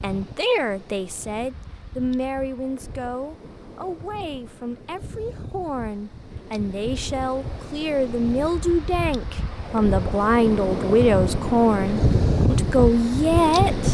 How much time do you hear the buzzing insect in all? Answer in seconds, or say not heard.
not heard.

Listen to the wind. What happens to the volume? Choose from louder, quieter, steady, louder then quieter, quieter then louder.
louder.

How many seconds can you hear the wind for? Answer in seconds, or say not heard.
14 s.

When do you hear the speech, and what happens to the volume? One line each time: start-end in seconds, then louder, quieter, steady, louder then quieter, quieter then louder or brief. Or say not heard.
0.0-13.8 quieter then louder.